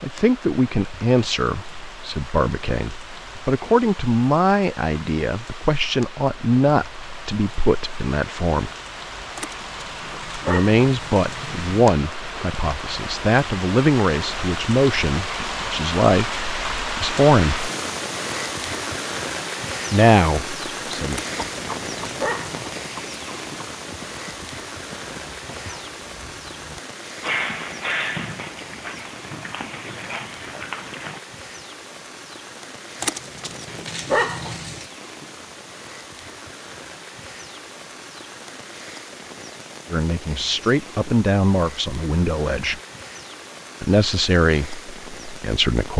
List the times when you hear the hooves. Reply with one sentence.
The hooves can be heard from 21.2 to 31.2 s.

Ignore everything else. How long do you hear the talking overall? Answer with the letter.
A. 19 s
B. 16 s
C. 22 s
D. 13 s
C.